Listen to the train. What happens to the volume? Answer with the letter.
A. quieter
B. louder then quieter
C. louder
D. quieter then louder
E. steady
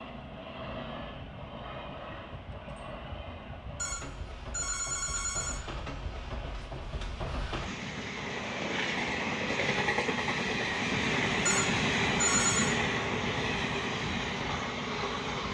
C.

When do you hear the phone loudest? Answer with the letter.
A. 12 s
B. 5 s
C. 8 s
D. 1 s
A.